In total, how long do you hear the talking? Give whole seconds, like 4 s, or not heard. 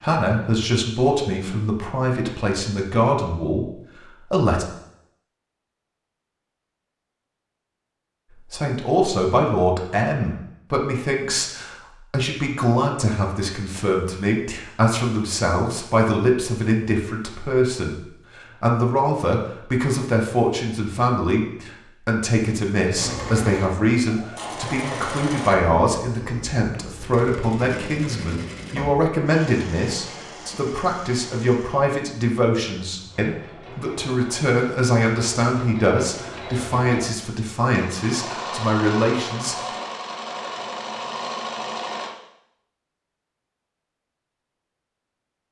36 s.